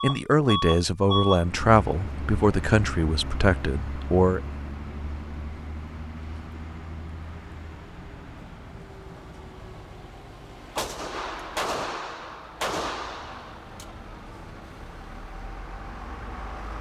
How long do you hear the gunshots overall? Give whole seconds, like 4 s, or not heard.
3 s.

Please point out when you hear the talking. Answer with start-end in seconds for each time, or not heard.
0.0-4.4.